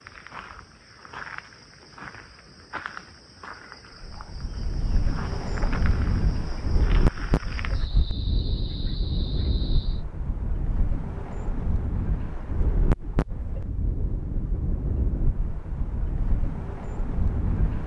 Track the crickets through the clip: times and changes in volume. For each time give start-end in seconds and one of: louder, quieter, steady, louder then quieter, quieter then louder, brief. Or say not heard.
0.0-10.1 steady.